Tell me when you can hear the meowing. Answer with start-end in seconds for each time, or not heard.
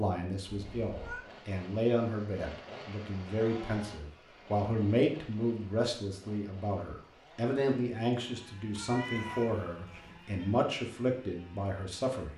0.5-1.2, 8.8-10.6.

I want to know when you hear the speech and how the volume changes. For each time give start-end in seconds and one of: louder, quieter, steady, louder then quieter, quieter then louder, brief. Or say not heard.
0.0-12.3 steady.